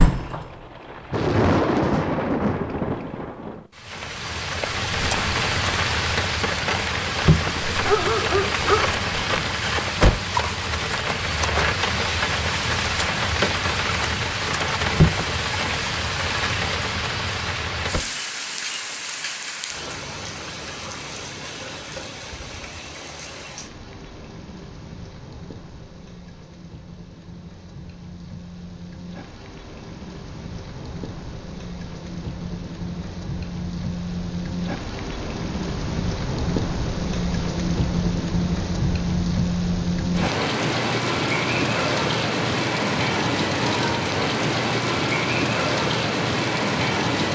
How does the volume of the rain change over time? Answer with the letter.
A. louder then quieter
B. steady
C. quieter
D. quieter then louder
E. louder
D.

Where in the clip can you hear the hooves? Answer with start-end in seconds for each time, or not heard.
not heard.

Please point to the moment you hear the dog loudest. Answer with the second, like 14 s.
8 s.